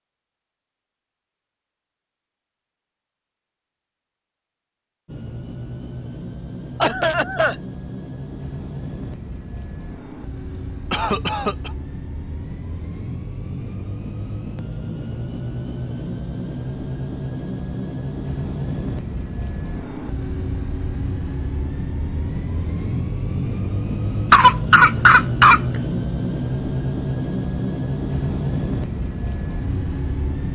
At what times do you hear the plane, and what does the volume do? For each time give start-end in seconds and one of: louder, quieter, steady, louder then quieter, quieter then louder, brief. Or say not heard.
5.0-30.5 louder.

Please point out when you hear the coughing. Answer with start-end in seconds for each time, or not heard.
6.8-7.5, 10.9-11.7, 24.3-25.6.